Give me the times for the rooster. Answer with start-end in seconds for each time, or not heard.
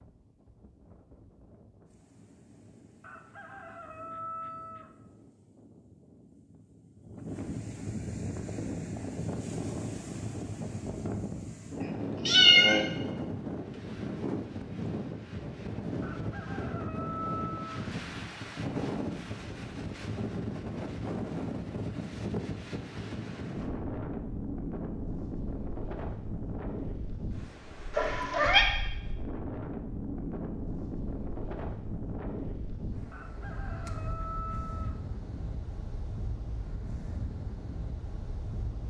3.0-5.0, 16.0-17.9, 33.1-35.0.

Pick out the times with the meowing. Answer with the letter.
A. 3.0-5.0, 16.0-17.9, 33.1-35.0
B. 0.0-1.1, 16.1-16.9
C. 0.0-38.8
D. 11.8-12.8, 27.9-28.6
D.